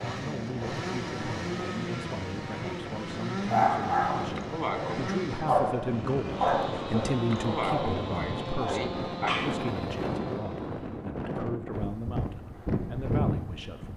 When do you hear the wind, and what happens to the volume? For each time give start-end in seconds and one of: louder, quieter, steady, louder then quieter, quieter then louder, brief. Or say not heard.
0.0-13.9 louder.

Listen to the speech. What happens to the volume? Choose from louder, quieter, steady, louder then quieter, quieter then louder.
louder then quieter.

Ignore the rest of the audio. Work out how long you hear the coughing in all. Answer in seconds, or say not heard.
3 s.